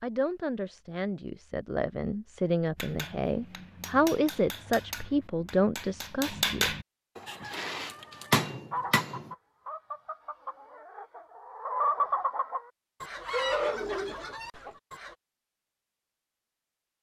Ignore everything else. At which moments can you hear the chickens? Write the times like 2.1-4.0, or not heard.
7.2-15.2.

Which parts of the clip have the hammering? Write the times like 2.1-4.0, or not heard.
2.8-9.3.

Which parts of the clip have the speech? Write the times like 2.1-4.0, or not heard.
0.0-6.8.